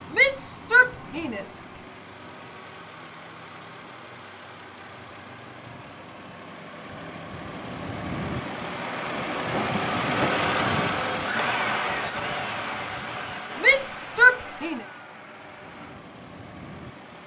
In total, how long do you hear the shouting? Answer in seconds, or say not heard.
3 s.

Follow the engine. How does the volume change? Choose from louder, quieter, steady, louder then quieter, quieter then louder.
louder then quieter.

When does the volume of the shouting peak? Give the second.
14 s.